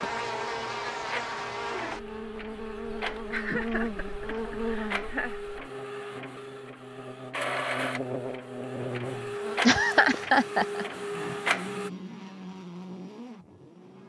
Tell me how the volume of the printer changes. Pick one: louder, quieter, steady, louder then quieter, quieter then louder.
louder.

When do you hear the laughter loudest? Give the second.
10 s.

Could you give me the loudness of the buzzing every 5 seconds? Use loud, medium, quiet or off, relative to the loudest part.
loud, medium, medium.